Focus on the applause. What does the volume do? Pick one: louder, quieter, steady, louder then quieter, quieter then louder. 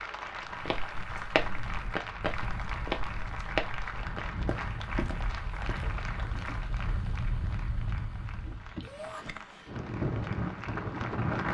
quieter.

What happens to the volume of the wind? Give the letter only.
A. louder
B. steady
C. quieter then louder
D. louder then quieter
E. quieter
A.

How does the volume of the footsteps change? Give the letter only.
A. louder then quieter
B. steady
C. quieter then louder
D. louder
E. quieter
E.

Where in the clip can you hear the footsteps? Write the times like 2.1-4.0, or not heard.
0.6-6.7.